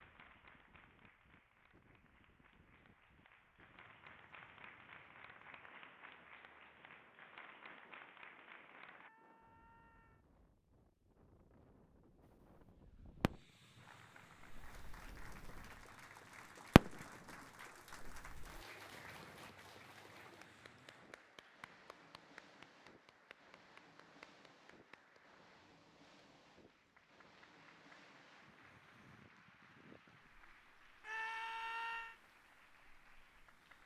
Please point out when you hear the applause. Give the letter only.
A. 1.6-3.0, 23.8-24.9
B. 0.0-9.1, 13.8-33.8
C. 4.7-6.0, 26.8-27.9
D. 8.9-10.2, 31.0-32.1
B.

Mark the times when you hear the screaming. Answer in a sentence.
The screaming can be heard from 8.9 to 10.2 s and from 31.0 to 32.1 s.